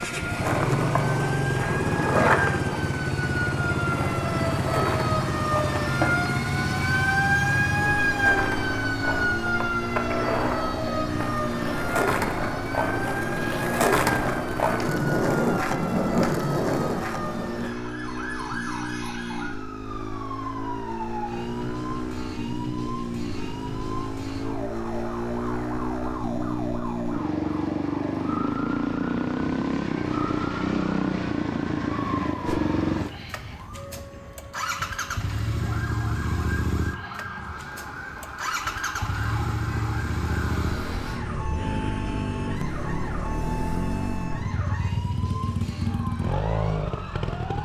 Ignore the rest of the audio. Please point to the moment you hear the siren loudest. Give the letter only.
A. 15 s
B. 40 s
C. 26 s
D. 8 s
D.